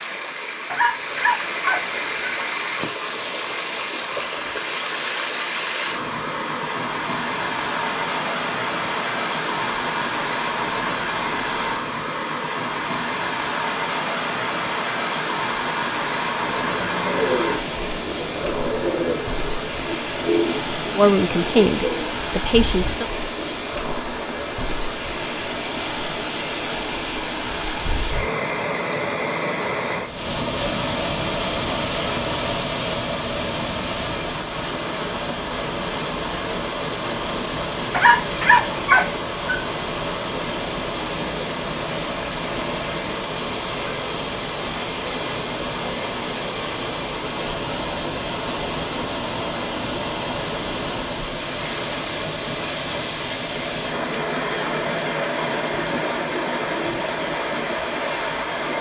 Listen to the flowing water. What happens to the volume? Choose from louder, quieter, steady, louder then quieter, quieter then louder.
steady.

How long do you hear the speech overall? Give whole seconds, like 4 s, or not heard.
2 s.